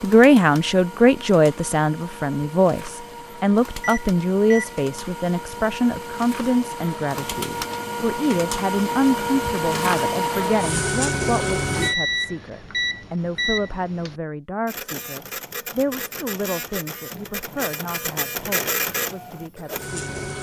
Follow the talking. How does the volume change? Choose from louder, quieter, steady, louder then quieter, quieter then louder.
quieter.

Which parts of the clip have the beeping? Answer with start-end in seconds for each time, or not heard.
3.8-4.8, 11.8-14.2.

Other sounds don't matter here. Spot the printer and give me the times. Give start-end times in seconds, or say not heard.
0.0-11.9, 14.7-20.3.